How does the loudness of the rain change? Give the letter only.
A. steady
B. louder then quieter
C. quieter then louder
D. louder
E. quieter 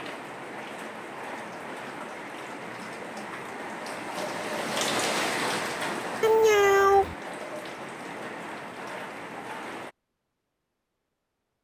B.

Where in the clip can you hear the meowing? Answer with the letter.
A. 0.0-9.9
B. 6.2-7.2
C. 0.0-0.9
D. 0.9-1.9
B.